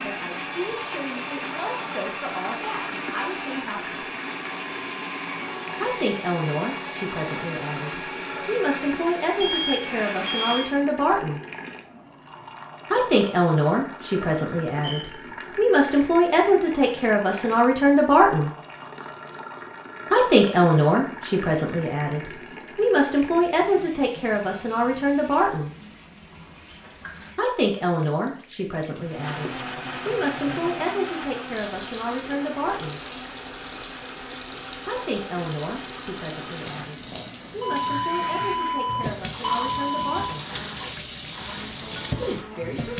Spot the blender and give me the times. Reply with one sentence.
You can hear the blender from 0.0 to 10.8 s and from 29.1 to 42.9 s.